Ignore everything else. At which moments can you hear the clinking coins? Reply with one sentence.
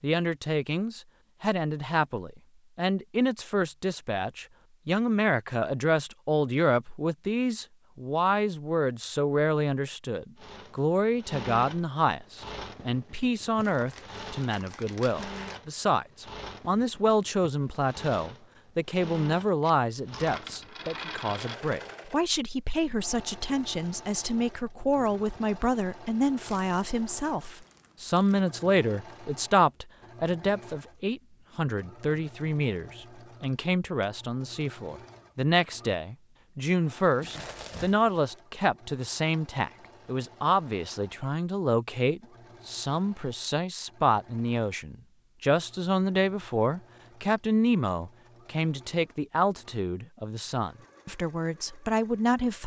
You can hear the clinking coins from 19.6 to 21.6 s.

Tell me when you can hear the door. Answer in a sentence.
The door can't be heard in this clip.